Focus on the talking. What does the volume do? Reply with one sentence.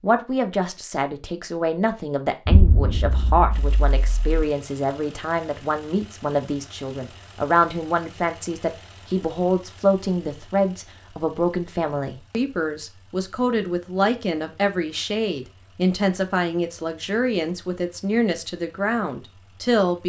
The loudness of the talking stays about the same.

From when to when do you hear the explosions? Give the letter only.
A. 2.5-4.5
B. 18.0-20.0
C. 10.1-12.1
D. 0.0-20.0
A.